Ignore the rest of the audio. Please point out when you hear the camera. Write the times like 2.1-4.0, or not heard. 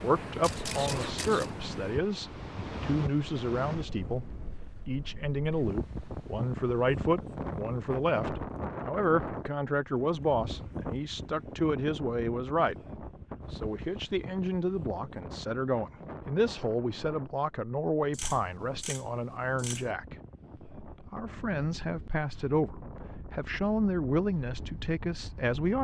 0.4-1.6, 18.1-19.9.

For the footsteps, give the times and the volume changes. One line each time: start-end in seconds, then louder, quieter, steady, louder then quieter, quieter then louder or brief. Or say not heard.
not heard.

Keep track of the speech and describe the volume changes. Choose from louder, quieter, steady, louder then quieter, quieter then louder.
steady.